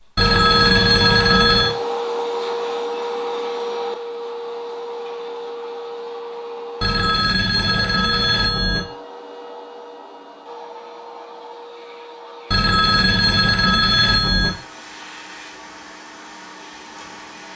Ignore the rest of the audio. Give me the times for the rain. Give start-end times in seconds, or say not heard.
not heard.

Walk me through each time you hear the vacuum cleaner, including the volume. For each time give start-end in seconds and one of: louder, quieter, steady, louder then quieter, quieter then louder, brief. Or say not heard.
0.0-17.5 quieter.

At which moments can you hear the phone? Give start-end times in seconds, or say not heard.
0.1-1.8, 6.8-8.8, 12.5-14.5.